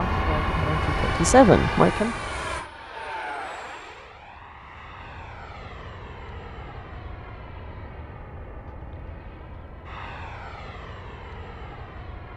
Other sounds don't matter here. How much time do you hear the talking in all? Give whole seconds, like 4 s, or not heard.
2 s.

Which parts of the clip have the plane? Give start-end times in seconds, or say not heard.
0.0-12.3.